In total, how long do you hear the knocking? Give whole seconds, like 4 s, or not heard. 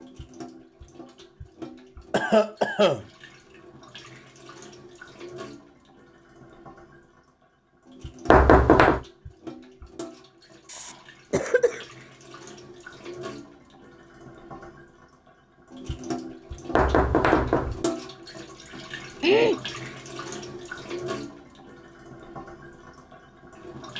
2 s.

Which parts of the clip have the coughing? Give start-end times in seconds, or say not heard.
2.1-3.0, 10.7-11.8, 19.2-19.6.